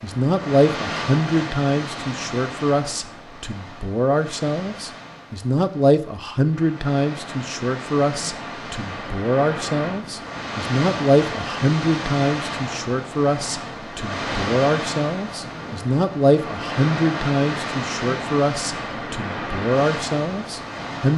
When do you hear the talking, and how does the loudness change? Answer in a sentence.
The talking can be heard from 0.0 to 21.1 s, at a steady volume.